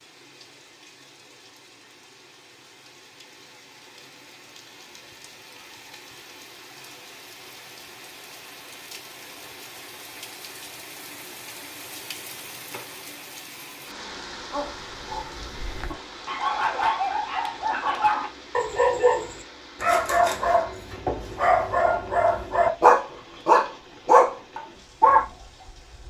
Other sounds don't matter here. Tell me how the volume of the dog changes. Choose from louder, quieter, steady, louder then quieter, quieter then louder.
louder.